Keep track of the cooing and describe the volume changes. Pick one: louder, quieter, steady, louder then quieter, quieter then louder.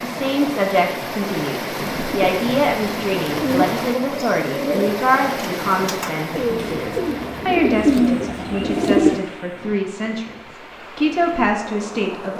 louder.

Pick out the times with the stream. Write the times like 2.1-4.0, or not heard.
0.0-12.3.